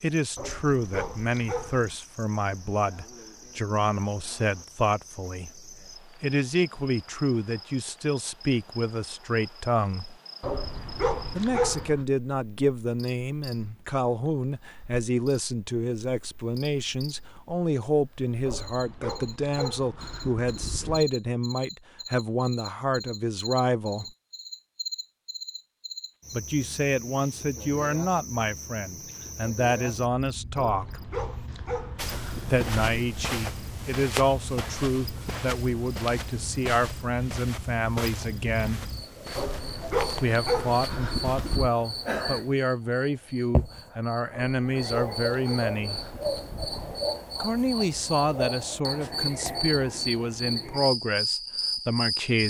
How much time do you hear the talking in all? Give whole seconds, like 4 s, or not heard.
45 s.